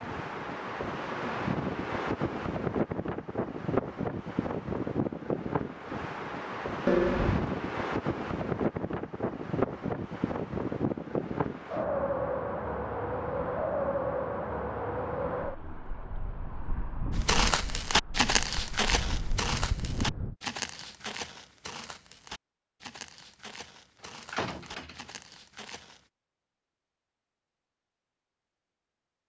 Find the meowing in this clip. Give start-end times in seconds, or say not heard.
not heard.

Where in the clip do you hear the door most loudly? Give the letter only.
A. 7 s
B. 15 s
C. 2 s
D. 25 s
A.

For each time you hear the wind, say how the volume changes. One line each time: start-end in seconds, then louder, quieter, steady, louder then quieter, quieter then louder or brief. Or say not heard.
0.0-20.4 quieter.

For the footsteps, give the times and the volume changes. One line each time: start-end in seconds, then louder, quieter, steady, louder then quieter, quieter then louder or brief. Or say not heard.
17.1-26.1 quieter.